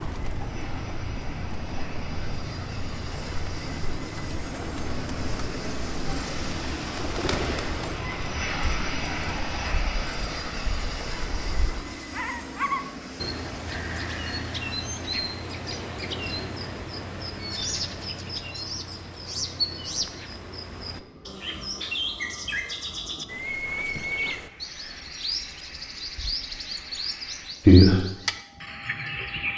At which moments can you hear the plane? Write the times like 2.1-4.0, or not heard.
0.1-29.5.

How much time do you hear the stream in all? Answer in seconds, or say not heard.
not heard.